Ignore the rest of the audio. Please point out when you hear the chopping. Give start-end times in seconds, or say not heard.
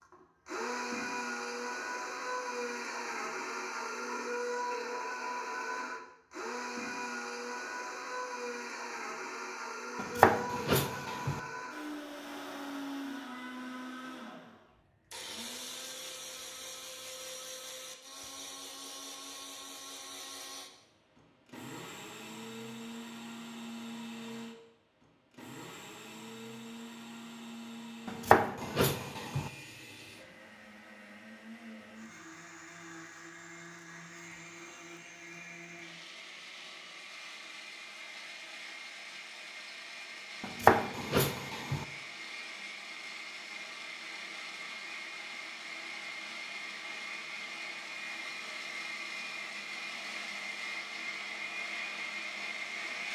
9.9-11.4, 28.1-29.5, 40.4-41.9.